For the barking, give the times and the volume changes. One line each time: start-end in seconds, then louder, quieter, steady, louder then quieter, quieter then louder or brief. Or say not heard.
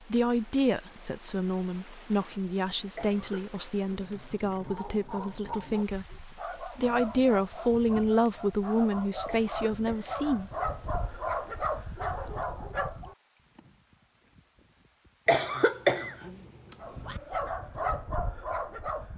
4.6-13.2 louder
16.8-19.1 brief.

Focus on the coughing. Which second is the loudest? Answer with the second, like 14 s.
16 s.